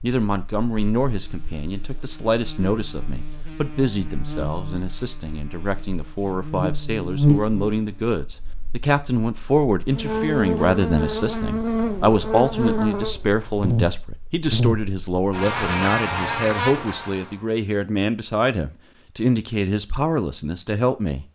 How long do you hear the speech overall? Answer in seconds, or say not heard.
21 s.